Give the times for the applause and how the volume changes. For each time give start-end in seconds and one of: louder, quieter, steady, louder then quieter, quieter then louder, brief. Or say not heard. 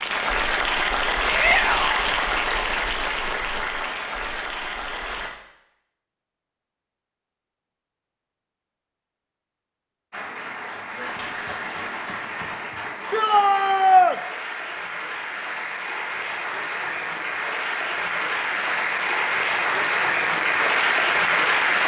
0.0-5.3 quieter
10.1-21.8 louder.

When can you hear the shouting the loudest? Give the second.
14 s.